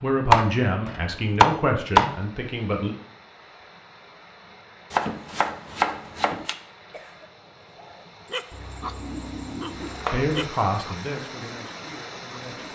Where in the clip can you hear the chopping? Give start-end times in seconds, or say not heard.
0.3-2.1, 4.9-6.5, 8.5-10.3.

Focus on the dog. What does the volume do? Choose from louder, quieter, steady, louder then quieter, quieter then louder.
quieter.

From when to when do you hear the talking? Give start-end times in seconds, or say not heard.
0.0-3.0, 10.1-12.7.